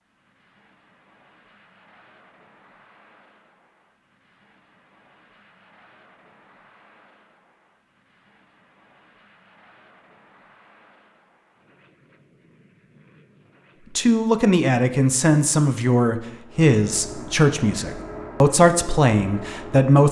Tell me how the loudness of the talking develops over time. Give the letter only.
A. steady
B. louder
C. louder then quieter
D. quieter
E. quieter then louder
A.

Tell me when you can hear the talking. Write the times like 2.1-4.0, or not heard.
13.9-20.0.